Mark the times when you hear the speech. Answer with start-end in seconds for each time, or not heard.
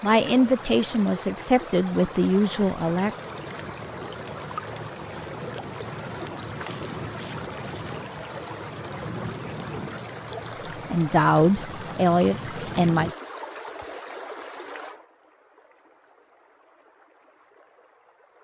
0.0-3.1, 10.9-13.2.